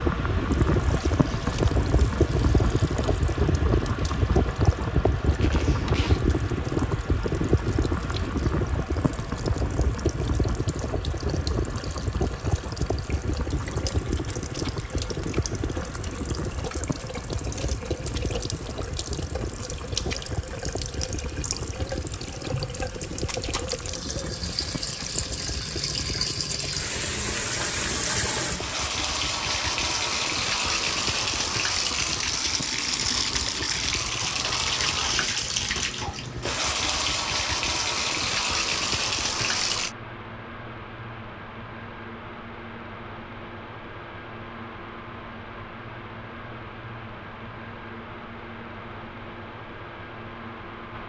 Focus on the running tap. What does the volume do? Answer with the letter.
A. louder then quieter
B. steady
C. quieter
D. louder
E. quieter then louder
D.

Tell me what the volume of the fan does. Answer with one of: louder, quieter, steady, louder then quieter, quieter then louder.
quieter.